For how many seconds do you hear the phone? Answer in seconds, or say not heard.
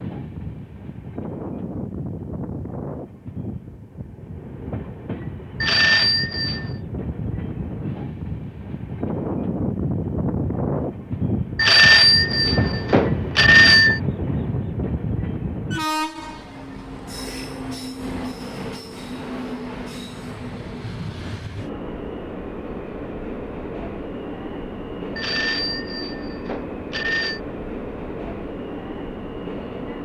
6 s.